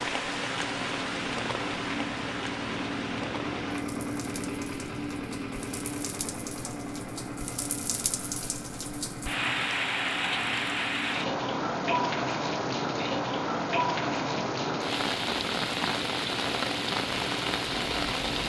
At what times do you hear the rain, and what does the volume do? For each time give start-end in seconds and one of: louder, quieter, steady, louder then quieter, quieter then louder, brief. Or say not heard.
0.0-18.4 quieter then louder.